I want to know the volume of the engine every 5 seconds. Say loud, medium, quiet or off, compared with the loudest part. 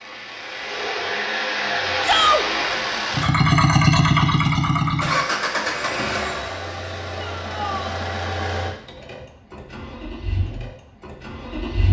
loud, medium, quiet.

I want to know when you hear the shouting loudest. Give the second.
2 s.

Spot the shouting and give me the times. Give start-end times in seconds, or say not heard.
2.0-2.5, 7.2-8.0.